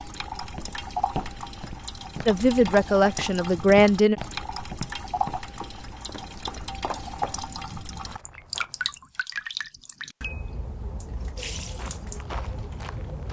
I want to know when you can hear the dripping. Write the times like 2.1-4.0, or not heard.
0.0-13.2.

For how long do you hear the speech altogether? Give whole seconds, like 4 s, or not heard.
2 s.